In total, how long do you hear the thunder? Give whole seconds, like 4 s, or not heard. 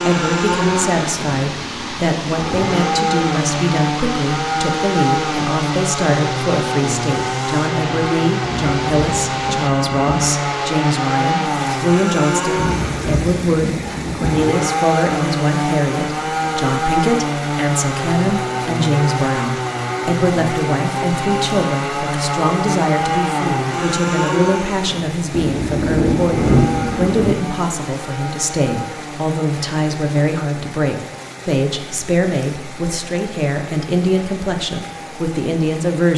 6 s.